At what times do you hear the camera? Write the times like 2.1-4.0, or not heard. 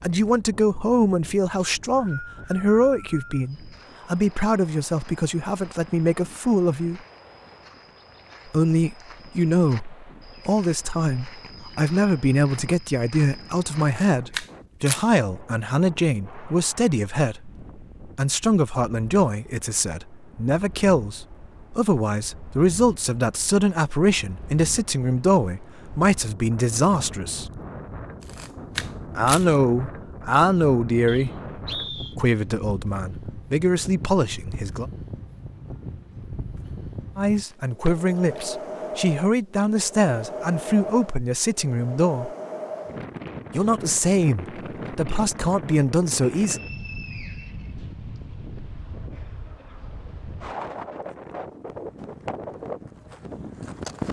13.8-15.2, 28.2-29.4, 37.4-38.5.